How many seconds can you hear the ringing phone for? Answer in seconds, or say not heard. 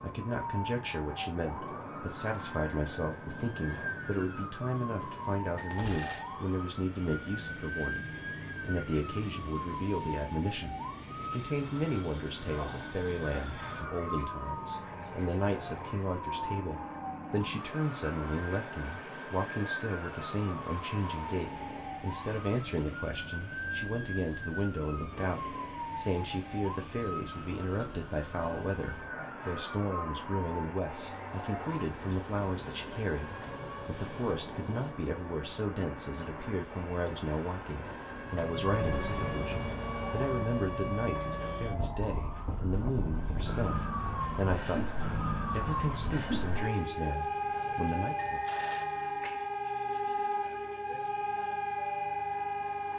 2 s.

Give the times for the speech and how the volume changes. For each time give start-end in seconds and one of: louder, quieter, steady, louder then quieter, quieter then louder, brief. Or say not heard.
0.0-48.4 steady.